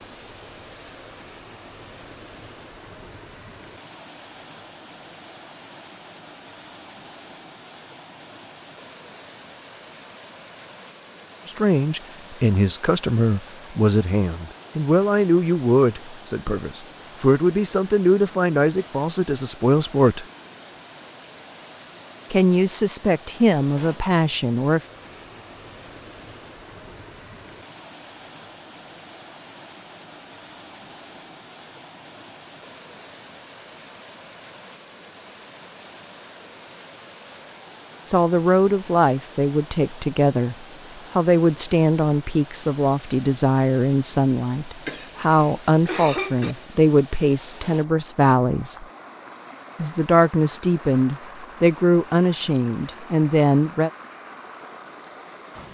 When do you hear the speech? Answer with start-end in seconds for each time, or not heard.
11.4-20.2, 22.3-24.8, 38.0-48.9, 49.8-53.9.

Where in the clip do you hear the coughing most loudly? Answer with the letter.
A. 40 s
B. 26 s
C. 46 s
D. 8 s
C.